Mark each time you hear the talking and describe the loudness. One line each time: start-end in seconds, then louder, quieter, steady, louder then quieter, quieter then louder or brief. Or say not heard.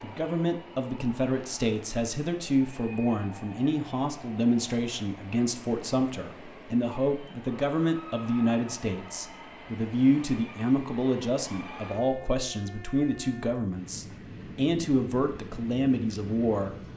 0.0-16.8 steady.